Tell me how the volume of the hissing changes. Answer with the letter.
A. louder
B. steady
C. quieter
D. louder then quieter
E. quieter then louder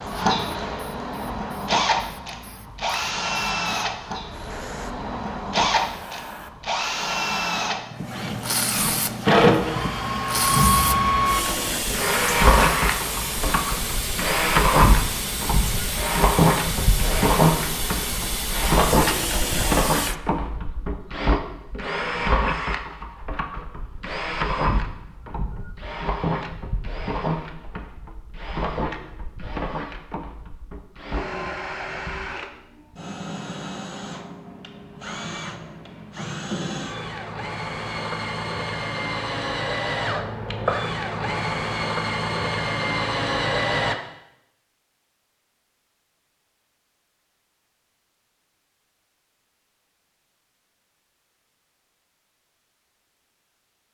A.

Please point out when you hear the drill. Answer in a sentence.
You can hear the drill from 0.0 to 44.0 s.